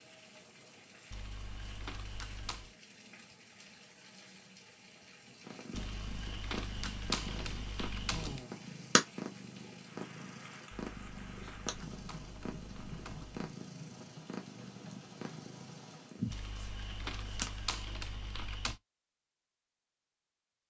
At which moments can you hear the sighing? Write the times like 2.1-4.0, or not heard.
8.1-8.7.